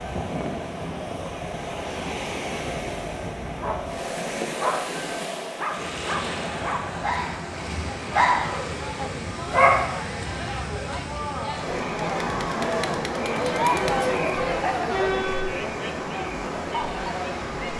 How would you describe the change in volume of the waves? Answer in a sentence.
The loudness of the waves stays about the same.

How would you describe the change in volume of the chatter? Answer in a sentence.
The volume of the chatter goes up.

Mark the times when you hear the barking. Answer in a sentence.
The barking can be heard from 3.5 to 9.9 s.